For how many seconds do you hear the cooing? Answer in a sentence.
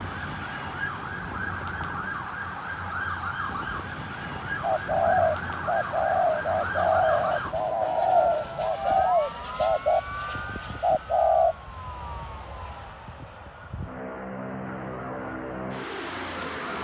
You can hear the cooing for 6 seconds altogether.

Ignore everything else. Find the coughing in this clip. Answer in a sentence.
You can't hear the coughing here.